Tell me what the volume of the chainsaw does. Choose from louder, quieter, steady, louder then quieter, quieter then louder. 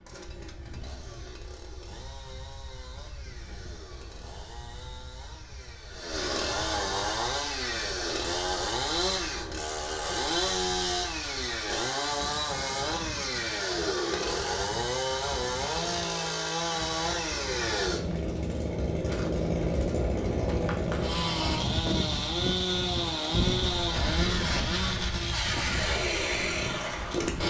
louder.